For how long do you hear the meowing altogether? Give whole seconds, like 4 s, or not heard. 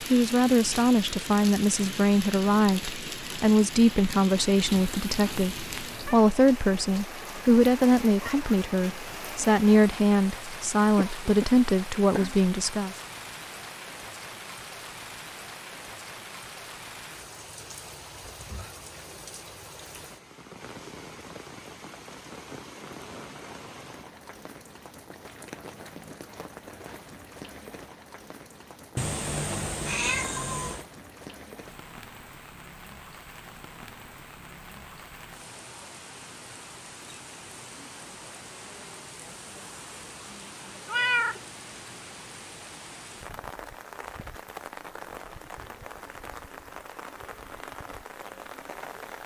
4 s.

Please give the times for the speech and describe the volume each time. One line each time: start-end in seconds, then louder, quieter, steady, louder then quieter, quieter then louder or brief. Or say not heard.
0.1-12.9 steady.